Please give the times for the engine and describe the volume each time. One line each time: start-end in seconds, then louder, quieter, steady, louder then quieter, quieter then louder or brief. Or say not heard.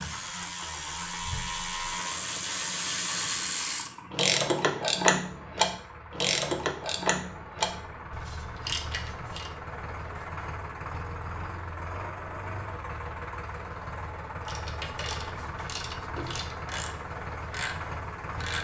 0.0-18.5 louder.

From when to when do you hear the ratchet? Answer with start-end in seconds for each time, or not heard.
0.0-9.5, 14.4-18.5.